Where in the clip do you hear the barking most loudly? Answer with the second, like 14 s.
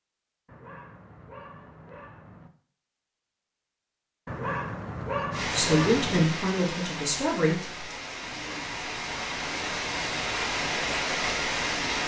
5 s.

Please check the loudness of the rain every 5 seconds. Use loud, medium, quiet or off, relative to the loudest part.
off, medium, loud.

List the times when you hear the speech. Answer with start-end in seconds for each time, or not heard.
5.5-7.8.